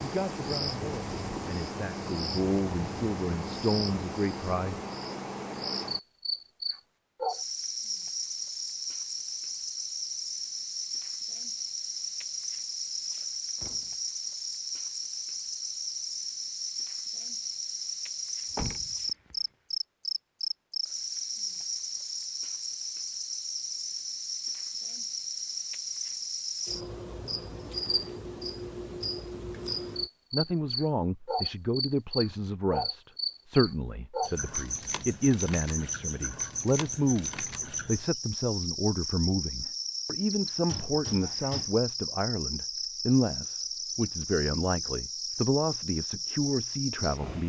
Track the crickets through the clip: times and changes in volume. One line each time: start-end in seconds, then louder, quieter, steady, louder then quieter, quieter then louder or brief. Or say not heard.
0.0-47.4 steady.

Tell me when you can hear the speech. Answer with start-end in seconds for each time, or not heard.
0.0-4.8, 30.3-47.4.